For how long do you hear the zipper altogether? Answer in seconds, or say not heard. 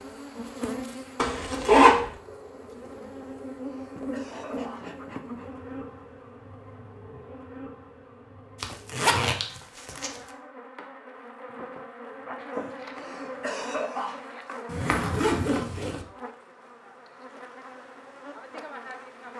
4 s.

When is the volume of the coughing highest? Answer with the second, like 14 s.
14 s.